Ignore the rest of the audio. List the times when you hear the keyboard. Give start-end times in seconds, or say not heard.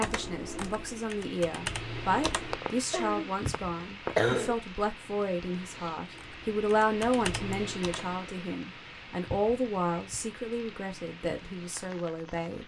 0.0-2.6, 6.0-8.2.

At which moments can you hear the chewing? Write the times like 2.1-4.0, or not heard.
not heard.